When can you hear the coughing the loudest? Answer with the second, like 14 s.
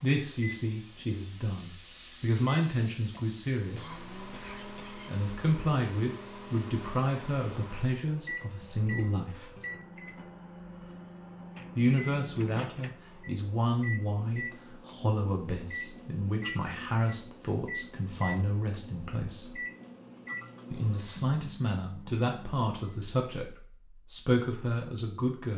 4 s.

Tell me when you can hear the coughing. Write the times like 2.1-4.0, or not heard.
3.8-5.2.